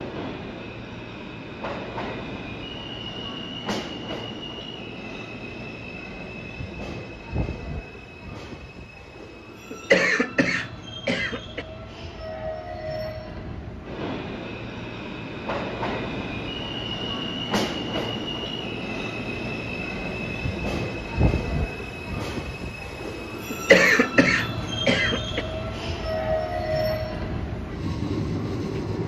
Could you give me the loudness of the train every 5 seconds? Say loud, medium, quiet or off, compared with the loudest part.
medium, medium, medium, loud, loud, loud.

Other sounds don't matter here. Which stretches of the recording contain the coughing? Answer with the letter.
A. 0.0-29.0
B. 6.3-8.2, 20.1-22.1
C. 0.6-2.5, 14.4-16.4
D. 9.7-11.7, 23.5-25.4
D.